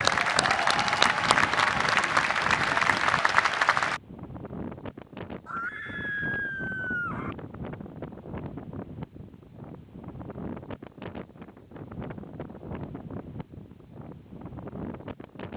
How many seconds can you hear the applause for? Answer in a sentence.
You can hear the applause for 4 seconds altogether.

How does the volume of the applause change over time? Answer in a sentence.
The loudness of the applause stays about the same.